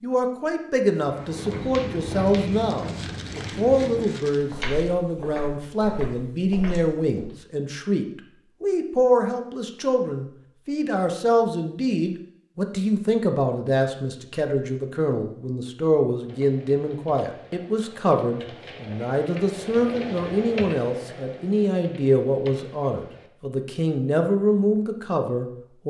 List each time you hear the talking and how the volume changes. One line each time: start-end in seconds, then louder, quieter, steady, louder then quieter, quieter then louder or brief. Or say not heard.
0.0-25.8 steady.